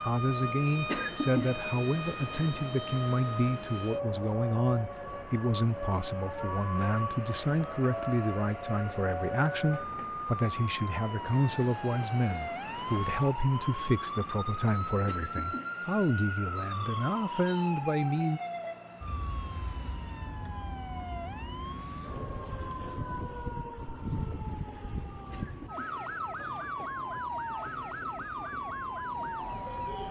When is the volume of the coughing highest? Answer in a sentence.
The loudest moment of the coughing is at 1 second.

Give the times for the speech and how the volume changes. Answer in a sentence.
You can hear the speech from 0.0 to 18.4 s, at a steady volume.